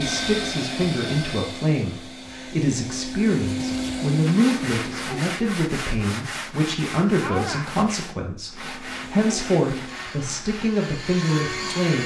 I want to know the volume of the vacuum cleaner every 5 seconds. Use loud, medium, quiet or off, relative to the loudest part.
loud, medium, loud.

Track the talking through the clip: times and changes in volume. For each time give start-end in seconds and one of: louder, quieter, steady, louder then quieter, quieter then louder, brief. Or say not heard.
0.0-12.0 steady.